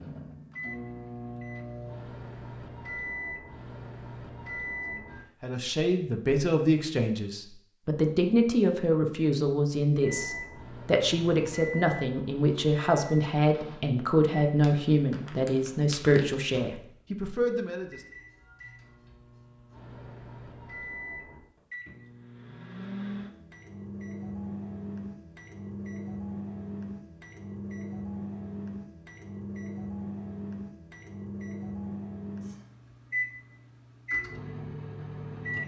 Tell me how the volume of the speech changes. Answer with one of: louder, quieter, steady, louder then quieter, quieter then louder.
steady.